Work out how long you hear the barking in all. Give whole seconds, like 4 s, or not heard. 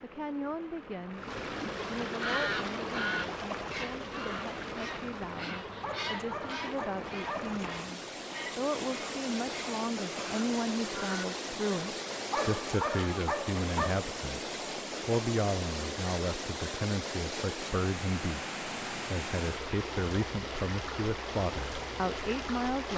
4 s.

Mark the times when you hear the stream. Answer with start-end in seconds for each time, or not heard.
0.0-22.9.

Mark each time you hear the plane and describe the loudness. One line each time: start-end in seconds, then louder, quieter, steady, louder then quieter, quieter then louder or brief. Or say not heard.
not heard.